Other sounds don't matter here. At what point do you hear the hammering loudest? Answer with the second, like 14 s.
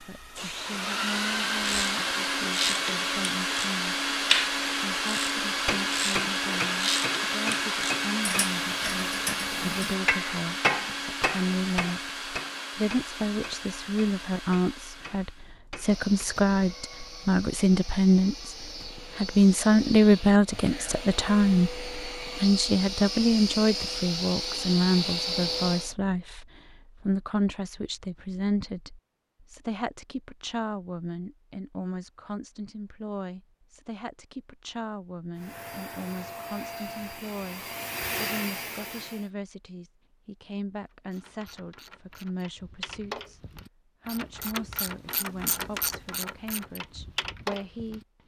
11 s.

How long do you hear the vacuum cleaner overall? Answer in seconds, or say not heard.
30 s.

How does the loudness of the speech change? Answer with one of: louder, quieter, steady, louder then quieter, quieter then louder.
louder then quieter.